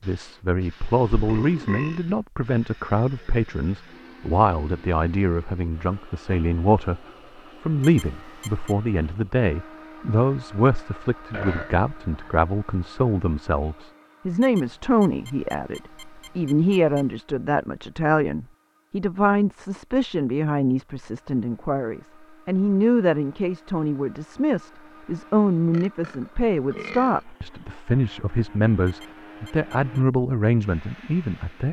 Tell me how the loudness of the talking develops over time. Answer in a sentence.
The volume of the talking stays about the same.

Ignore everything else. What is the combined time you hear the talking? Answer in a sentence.
The talking can be heard for 31 seconds in total.